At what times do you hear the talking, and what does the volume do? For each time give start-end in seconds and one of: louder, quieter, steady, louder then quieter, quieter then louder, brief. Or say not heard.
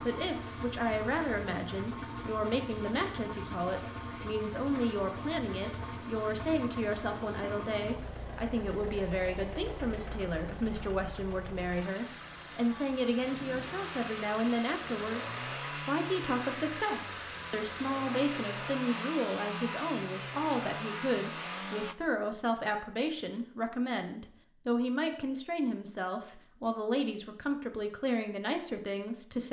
0.1-29.4 steady.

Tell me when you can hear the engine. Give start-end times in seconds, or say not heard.
0.0-21.9.